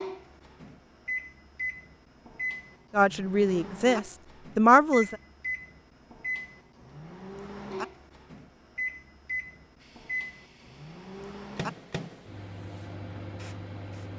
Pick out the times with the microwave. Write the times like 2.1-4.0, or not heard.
0.0-14.1.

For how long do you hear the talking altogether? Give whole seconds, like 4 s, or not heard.
2 s.